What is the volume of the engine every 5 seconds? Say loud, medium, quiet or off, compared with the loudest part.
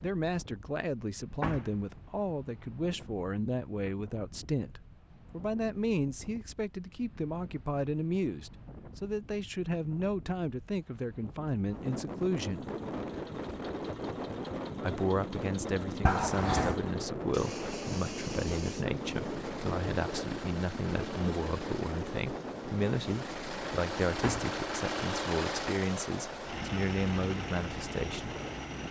off, off, quiet, medium, loud, loud.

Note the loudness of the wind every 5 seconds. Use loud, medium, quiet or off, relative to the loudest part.
quiet, quiet, loud, loud, loud, medium.